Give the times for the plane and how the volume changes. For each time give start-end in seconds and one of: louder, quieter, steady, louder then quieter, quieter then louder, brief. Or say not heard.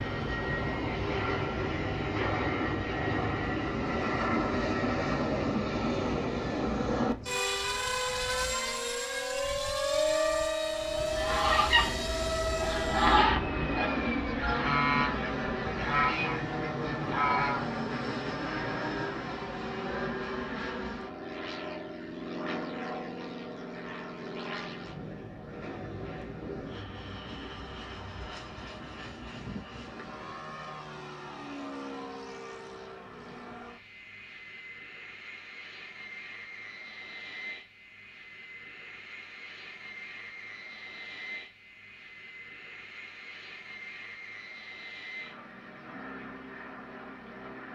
0.0-47.7 quieter.